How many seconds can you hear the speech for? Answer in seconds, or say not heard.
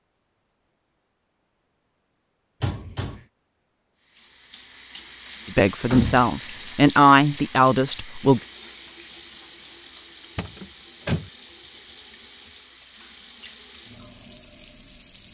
3 s.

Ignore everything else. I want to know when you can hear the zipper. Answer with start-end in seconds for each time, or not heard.
not heard.